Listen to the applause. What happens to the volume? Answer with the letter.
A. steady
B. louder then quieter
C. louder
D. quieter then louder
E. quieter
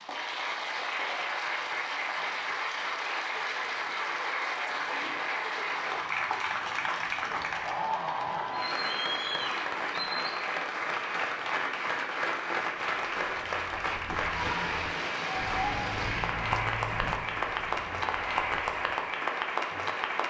A.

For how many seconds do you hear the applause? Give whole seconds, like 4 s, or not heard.
20 s.